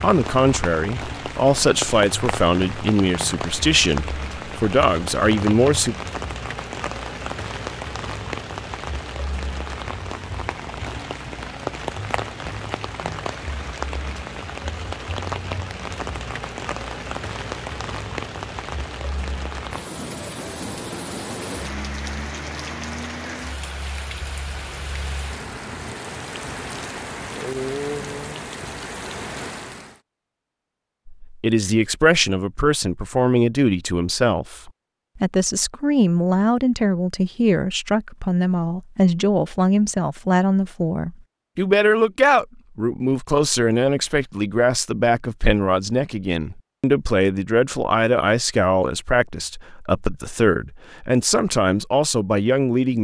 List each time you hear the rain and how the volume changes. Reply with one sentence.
You can hear the rain from 0.0 to 30.0 s, at a steady volume.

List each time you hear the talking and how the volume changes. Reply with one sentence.
You can hear the talking from 0.0 to 6.0 s, at a steady volume; and from 31.2 to 52.9 s, at a steady volume.